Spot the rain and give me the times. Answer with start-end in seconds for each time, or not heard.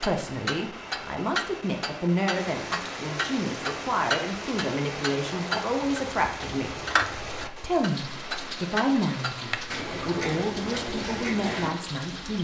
2.3-12.3.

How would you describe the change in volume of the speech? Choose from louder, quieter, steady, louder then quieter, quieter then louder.
steady.